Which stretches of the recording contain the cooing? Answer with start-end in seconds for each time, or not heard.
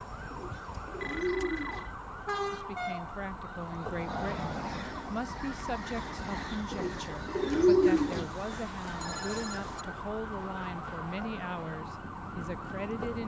0.3-1.9, 6.7-8.3.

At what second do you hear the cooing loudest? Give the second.
8 s.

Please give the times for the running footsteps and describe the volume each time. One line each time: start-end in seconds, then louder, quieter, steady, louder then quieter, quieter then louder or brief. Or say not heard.
not heard.